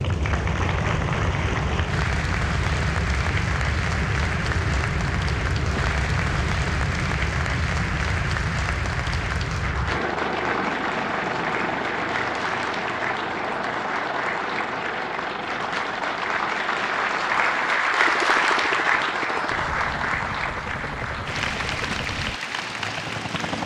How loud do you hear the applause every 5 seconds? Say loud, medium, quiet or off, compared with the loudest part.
medium, medium, medium, loud, medium.